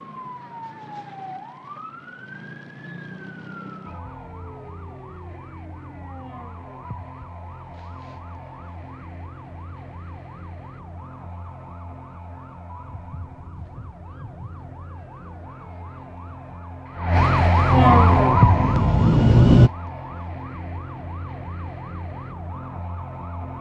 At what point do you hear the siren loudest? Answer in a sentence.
The volume of the siren peaks at 18 seconds.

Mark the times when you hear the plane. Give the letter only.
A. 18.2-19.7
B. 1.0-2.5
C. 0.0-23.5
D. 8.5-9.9
A.